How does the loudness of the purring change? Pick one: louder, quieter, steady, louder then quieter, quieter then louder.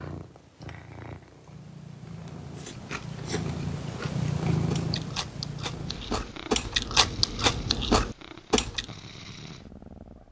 louder then quieter.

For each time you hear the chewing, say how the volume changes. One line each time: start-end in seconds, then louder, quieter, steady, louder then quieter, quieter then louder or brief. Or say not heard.
2.5-8.8 louder.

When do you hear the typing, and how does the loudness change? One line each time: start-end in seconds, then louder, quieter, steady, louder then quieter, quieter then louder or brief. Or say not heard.
not heard.